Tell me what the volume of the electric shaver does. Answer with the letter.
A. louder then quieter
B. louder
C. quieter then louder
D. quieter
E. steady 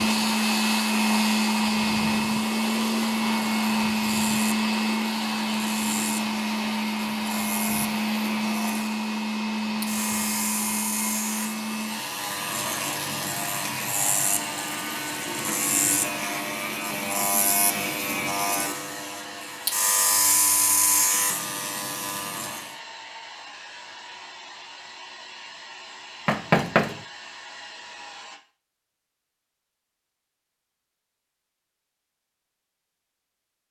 B.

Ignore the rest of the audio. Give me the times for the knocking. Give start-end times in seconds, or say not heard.
26.2-27.0.